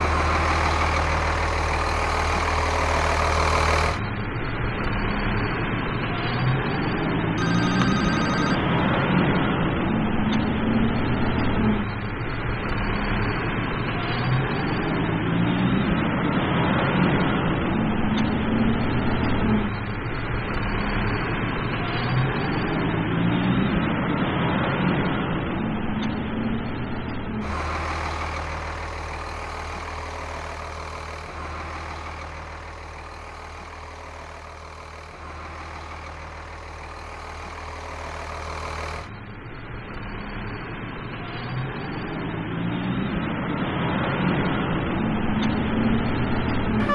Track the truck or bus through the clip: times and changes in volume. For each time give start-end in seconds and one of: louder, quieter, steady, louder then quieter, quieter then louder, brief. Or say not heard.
0.0-46.9 quieter then louder.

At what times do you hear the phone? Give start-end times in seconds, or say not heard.
7.3-9.1.